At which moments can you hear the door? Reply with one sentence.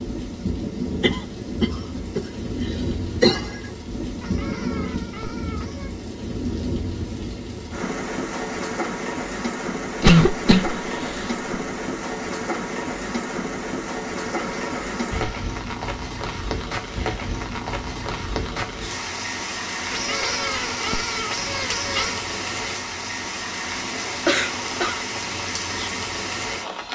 You can't hear the door here.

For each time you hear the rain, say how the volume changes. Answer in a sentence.
You can hear the rain from 0.0 to 26.9 s, at a steady volume.